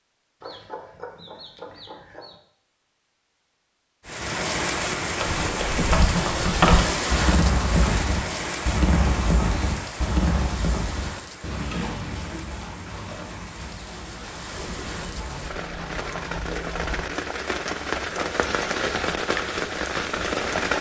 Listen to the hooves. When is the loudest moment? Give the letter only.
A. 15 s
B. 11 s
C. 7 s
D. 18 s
C.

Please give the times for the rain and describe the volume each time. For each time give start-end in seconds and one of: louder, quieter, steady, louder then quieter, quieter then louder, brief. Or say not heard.
4.0-20.7 quieter then louder.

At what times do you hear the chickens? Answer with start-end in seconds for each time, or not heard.
0.4-2.4, 14.6-17.1.